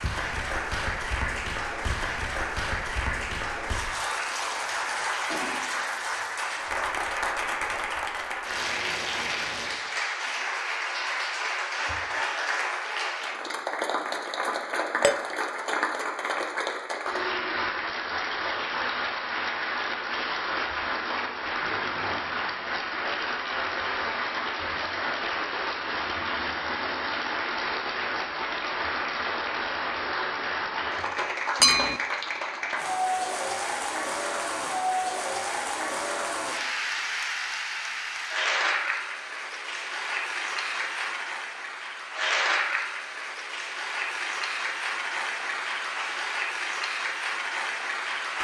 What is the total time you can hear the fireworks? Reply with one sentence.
The fireworks can't be heard in this clip.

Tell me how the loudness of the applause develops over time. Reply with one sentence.
The loudness of the applause stays about the same.